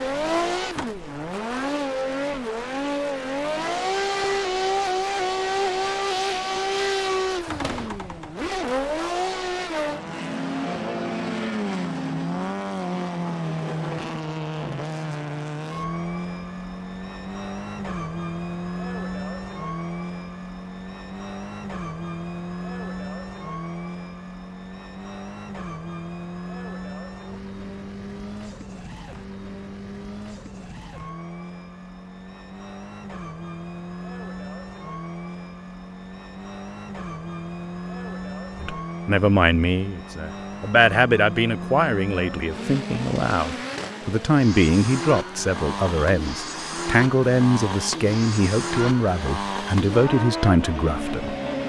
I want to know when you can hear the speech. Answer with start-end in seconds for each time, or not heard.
38.5-51.4.